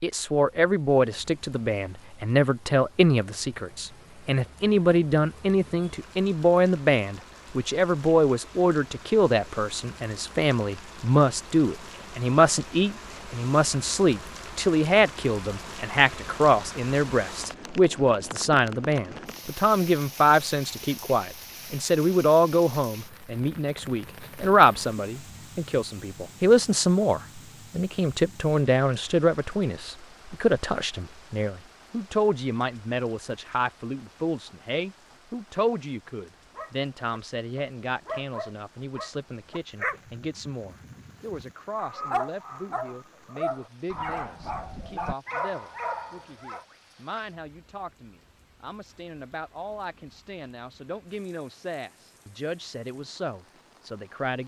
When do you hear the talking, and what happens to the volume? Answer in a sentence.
The talking can be heard from 0.0 to 54.4 s, getting quieter.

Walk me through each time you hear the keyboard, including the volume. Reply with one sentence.
You can't hear the keyboard here.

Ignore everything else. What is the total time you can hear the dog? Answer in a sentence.
The dog can be heard for 10 seconds in total.